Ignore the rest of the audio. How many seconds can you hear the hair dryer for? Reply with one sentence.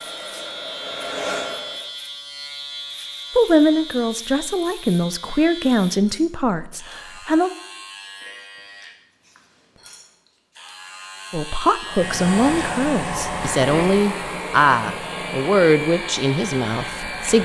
The hair dryer can be heard for 7 seconds in total.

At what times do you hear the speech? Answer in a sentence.
You can hear the speech from 3.4 to 7.5 s and from 11.3 to 17.3 s.